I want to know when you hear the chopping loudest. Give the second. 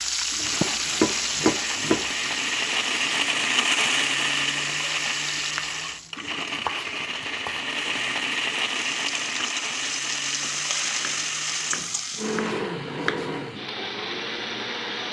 1 s.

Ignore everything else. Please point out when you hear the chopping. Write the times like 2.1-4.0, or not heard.
0.6-2.4, 5.7-8.1, 10.4-13.2.